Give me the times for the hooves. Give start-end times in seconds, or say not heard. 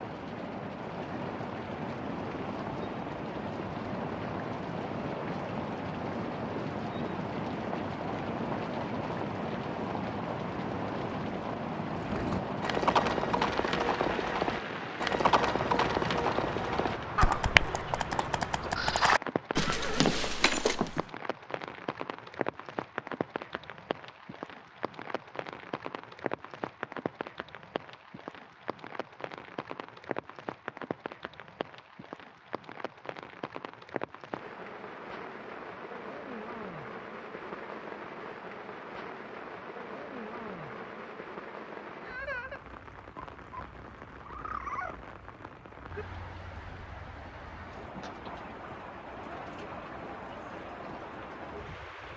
11.9-21.1.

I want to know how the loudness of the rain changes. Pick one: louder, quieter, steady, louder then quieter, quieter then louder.
quieter.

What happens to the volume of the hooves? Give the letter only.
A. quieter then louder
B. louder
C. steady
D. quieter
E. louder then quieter
C.